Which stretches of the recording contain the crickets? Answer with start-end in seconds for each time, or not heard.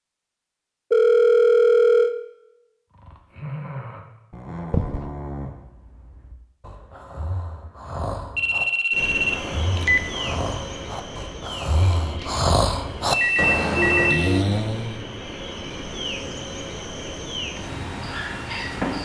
8.9-19.0.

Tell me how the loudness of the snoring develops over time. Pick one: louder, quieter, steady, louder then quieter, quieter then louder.
quieter then louder.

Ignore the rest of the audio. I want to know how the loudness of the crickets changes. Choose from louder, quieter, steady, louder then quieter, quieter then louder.
quieter then louder.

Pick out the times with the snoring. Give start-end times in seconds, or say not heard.
2.9-15.1.